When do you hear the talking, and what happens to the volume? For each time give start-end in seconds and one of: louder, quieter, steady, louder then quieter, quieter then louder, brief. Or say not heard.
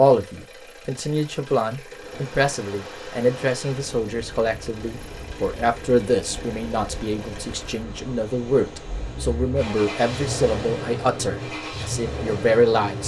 0.0-13.0 steady.